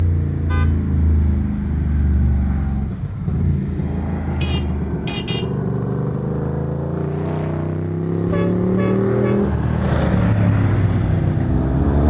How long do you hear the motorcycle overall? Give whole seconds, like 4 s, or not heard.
12 s.